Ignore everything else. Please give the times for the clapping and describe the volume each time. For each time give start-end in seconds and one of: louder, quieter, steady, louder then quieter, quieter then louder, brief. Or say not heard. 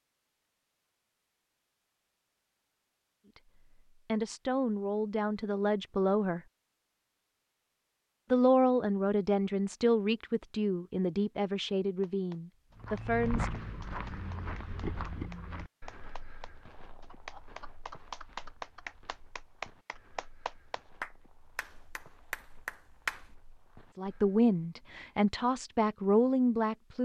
12.0-23.3 louder.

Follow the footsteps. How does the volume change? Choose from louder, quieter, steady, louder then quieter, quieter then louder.
quieter.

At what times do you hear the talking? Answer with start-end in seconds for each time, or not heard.
4.0-6.4, 8.3-13.6, 23.9-27.0.